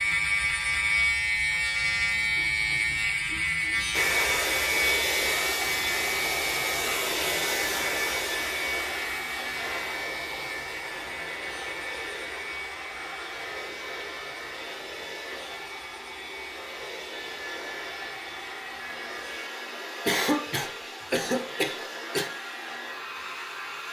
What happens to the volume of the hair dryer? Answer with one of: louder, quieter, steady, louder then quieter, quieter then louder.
quieter.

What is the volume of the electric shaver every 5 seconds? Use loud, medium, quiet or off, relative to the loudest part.
loud, medium, quiet, quiet, quiet.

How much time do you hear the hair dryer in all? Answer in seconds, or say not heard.
20 s.